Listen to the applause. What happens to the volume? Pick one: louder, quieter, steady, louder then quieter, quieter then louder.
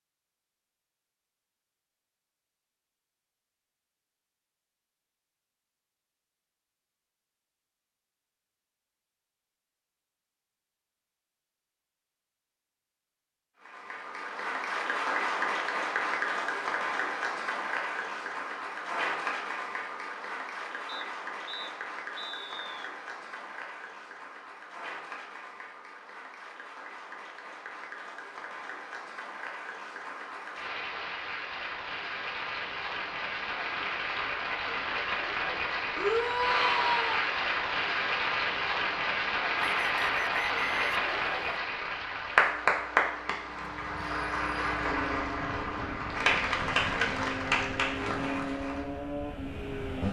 quieter then louder.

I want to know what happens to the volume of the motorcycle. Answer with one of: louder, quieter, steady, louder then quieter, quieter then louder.
louder.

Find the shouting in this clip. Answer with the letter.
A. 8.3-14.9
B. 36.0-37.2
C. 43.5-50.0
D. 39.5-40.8
B.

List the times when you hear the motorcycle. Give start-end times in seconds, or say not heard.
43.5-50.0.